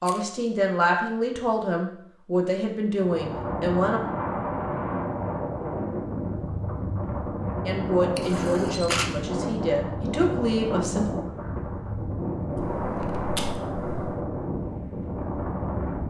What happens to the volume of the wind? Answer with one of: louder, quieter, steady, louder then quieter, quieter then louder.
steady.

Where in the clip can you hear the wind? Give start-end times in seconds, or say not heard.
2.9-16.0.